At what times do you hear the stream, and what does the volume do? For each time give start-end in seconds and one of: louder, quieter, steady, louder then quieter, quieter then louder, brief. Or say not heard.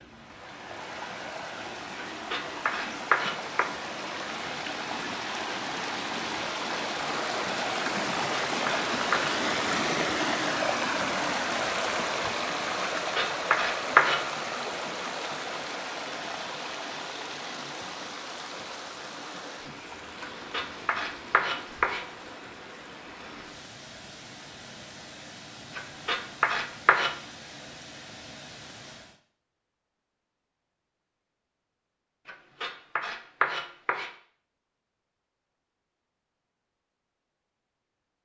0.0-29.2 louder then quieter.